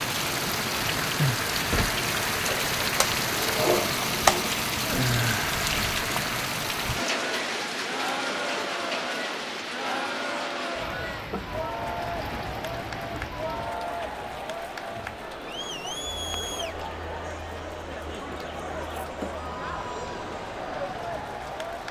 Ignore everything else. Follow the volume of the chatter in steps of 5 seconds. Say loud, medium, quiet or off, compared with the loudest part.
off, loud, loud, loud, loud.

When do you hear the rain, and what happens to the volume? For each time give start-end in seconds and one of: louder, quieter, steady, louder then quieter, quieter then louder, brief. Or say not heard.
0.0-21.8 quieter.